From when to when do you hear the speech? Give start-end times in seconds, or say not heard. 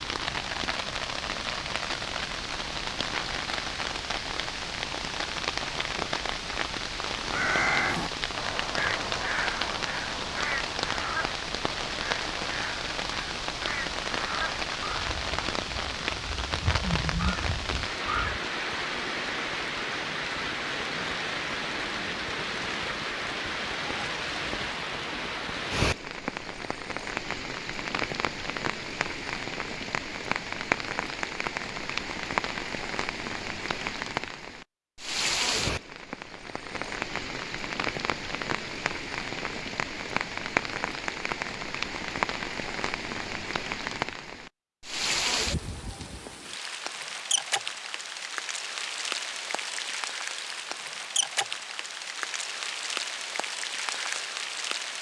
not heard.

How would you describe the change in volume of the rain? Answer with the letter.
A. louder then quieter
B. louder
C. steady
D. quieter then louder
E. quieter
C.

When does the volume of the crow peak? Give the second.
8 s.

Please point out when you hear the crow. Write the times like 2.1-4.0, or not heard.
7.2-18.4.